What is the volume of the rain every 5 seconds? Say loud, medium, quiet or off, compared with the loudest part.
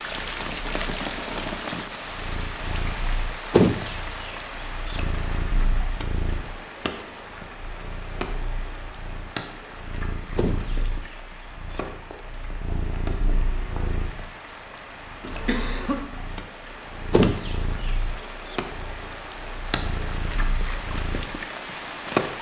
loud, medium, medium, medium, loud.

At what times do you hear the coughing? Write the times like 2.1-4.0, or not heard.
15.2-16.0.